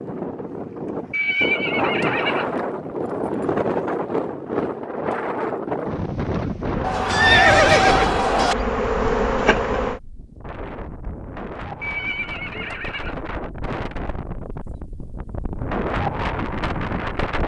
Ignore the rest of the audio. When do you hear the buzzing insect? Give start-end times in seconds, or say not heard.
6.6-10.0.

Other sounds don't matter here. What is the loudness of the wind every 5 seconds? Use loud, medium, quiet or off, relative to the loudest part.
loud, loud, medium, loud.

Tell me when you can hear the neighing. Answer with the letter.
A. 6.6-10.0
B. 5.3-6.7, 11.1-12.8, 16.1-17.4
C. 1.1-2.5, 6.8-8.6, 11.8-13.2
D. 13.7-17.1
C.